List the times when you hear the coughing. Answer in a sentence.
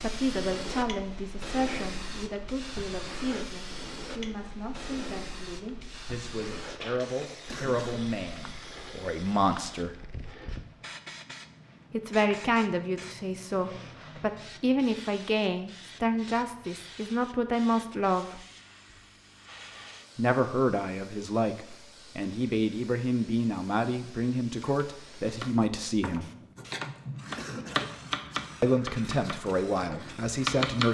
The coughing can be heard from 7.5 to 8.1 s and from 27.4 to 28.0 s.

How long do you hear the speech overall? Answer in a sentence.
You can hear the speech for 25 seconds altogether.